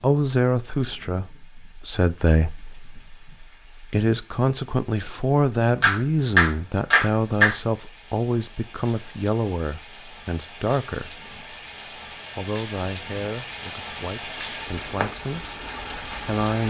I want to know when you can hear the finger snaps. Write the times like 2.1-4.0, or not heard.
5.8-7.5.